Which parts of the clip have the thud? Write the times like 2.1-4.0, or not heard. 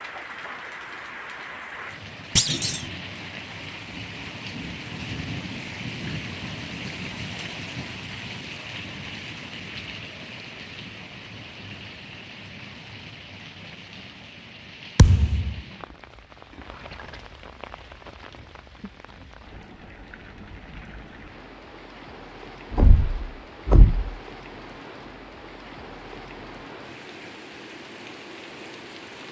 2.4-2.8, 14.9-15.6, 22.7-24.1.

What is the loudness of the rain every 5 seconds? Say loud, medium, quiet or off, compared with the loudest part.
loud, loud, medium, medium, medium, medium.